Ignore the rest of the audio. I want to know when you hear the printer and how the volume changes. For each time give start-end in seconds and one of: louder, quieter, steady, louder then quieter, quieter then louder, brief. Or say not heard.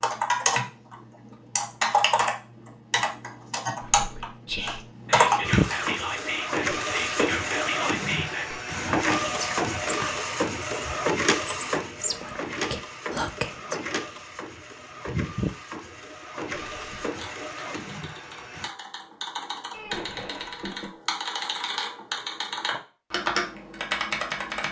5.4-18.7 quieter.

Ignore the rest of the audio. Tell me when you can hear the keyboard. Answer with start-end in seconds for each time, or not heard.
0.0-6.0, 16.7-24.6.